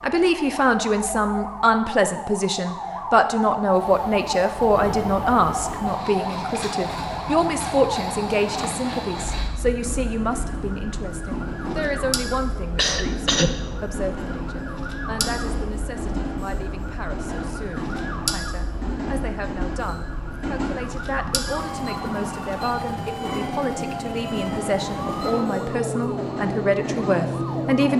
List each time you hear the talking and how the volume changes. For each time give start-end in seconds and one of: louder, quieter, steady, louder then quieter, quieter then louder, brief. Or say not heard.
0.0-27.9 quieter then louder.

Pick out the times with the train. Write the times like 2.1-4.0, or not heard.
3.6-27.9.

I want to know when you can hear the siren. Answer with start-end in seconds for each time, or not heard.
0.0-27.9.